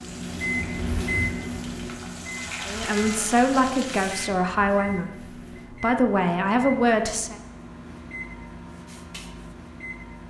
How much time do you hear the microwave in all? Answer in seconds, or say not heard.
10 s.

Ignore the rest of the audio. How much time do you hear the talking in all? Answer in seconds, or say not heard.
4 s.